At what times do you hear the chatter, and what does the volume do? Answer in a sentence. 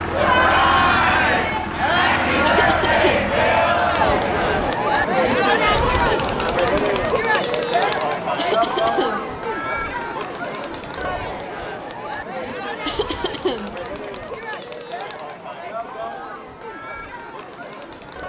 The chatter can be heard from 0.0 to 18.2 s, getting quieter.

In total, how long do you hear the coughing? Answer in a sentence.
You can hear the coughing for 3 seconds altogether.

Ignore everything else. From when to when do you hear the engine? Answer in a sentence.
The engine can be heard from 0.0 to 4.8 s.